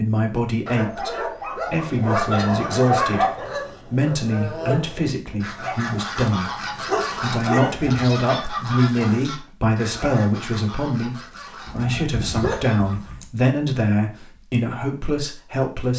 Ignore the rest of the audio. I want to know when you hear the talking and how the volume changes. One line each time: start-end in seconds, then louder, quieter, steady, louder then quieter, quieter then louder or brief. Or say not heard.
0.0-15.9 steady.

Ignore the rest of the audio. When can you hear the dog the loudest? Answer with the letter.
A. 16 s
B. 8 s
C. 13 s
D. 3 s
D.